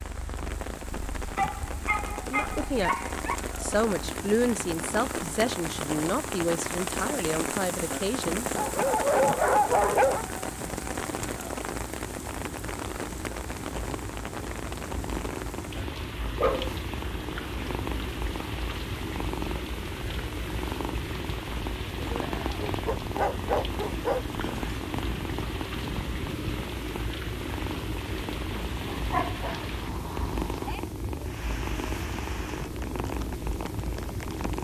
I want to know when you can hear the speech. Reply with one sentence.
The speech can be heard from 2.0 to 3.0 s and from 3.6 to 8.5 s.